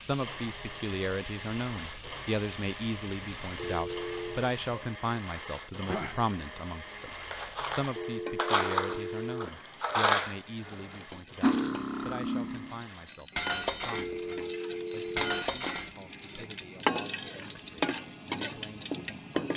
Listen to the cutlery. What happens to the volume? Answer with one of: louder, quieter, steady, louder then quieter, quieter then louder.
steady.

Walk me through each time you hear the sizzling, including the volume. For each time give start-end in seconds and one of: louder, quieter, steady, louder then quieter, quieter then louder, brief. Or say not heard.
0.0-19.5 louder.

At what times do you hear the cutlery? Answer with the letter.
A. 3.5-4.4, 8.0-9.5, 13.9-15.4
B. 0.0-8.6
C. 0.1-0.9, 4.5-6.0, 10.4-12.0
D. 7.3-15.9
D.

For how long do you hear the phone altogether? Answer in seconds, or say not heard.
4 s.